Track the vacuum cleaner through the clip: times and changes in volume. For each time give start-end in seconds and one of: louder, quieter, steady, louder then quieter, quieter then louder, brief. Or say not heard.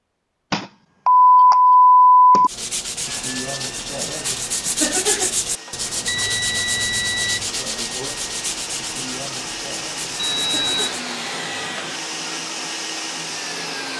3.0-13.9 louder.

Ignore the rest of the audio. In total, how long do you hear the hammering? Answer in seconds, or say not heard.
not heard.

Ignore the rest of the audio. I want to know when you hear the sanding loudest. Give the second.
5 s.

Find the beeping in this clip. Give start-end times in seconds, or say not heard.
0.5-2.5, 6.0-7.5, 10.2-11.0.